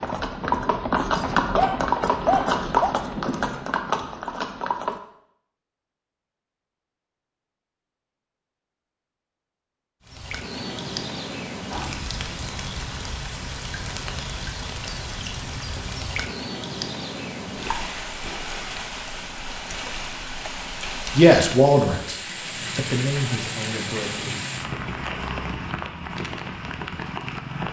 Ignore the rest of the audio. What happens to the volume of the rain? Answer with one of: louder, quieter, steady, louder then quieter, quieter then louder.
steady.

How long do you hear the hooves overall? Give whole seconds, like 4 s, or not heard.
5 s.